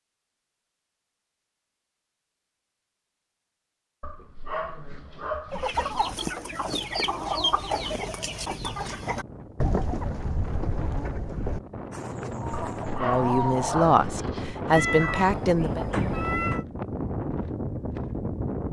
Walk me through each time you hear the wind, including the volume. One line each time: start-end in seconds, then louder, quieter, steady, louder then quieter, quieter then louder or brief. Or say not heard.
8.9-18.6 louder.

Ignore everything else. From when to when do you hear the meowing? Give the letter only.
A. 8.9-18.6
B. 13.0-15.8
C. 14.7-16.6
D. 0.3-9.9
C.